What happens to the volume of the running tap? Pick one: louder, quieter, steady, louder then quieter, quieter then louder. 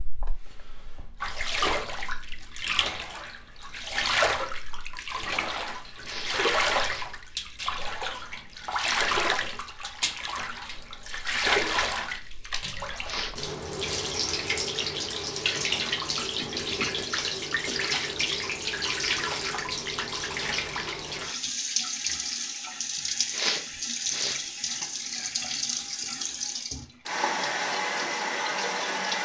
steady.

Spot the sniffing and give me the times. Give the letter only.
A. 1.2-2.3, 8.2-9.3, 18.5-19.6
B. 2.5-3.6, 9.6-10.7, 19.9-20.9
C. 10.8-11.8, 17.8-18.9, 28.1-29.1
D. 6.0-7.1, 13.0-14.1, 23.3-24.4
D.